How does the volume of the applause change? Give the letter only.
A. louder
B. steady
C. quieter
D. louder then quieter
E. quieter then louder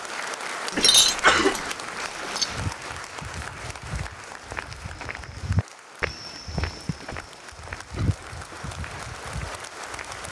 E.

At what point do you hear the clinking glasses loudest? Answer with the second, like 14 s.
1 s.